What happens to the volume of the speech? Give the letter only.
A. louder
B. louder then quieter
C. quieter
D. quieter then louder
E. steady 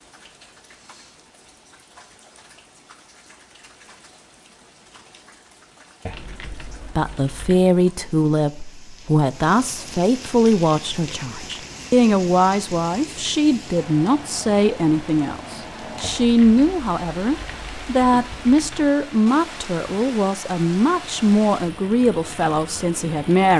E.